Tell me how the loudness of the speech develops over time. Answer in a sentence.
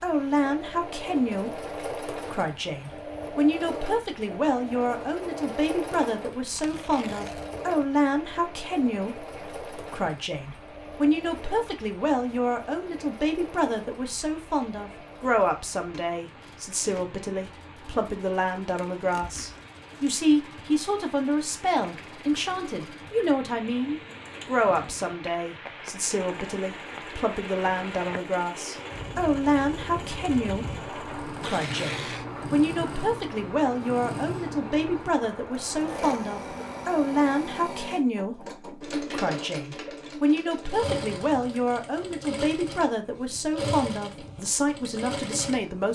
The loudness of the speech stays about the same.